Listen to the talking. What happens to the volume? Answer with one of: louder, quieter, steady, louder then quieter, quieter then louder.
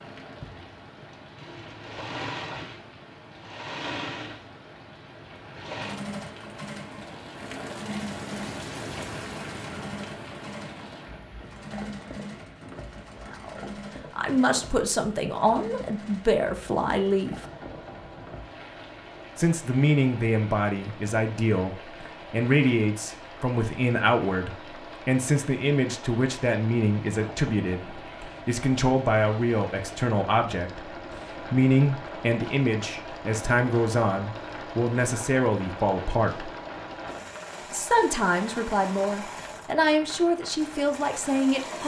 steady.